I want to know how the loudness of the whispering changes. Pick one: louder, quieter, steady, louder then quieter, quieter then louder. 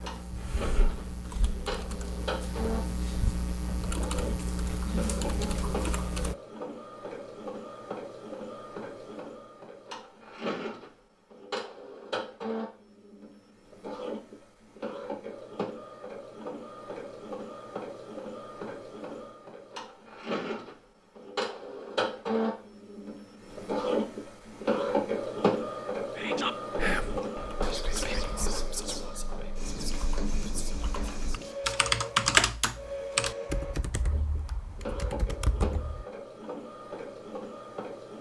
quieter.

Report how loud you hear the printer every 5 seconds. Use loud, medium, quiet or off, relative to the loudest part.
medium, medium, medium, medium, loud, loud, medium, medium.